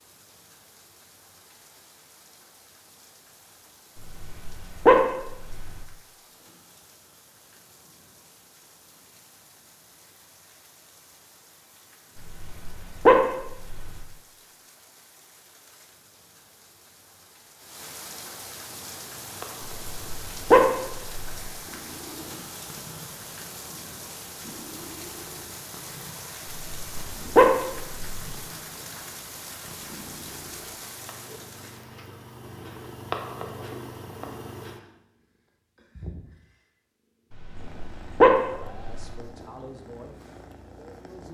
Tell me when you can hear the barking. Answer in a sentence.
The barking can be heard from 4.0 to 5.8 s, from 12.2 to 14.1 s, from 19.9 to 21.5 s, from 26.6 to 28.4 s and from 37.3 to 39.2 s.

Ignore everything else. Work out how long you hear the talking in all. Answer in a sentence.
The talking can be heard for 3 seconds in total.